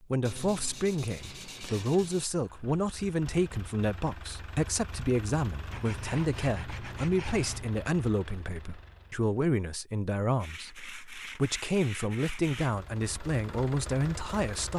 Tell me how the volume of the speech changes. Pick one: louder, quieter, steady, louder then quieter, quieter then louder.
steady.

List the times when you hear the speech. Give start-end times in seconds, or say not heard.
0.0-14.7.